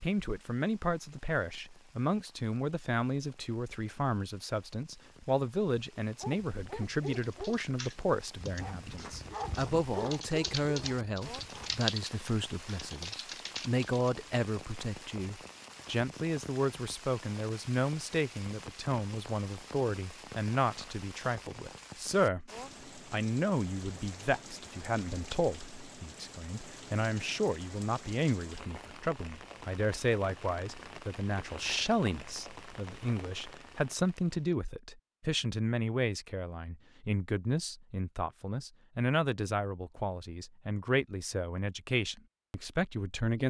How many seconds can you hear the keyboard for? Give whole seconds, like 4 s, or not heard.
7 s.